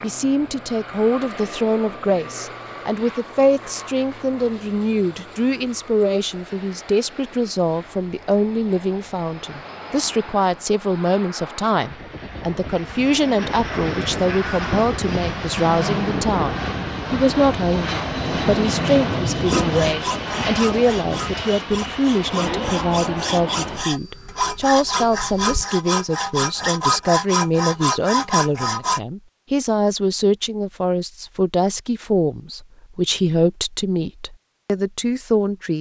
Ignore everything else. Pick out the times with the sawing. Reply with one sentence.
The sawing can be heard from 19.4 to 29.0 s.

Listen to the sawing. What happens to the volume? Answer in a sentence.
The volume of the sawing goes up.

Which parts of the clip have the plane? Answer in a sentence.
The plane can be heard from 0.0 to 25.6 s.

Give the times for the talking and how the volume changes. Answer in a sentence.
The talking can be heard from 0.0 to 35.7 s, at a steady volume.